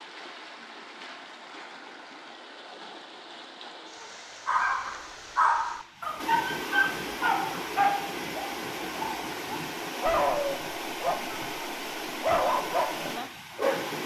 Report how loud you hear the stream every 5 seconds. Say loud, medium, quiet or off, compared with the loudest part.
medium, loud, loud.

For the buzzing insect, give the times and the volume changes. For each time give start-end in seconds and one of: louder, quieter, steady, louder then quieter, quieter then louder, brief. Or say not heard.
not heard.